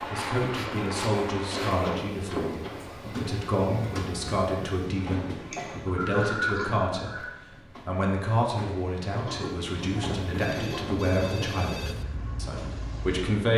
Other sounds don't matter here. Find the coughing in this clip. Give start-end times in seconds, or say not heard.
1.5-2.9, 5.4-7.3, 9.2-11.7.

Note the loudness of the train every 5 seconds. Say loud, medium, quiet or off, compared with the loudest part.
loud, medium, loud.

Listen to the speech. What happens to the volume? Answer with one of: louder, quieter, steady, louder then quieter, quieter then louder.
steady.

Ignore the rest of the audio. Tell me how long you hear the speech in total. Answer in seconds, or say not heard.
13 s.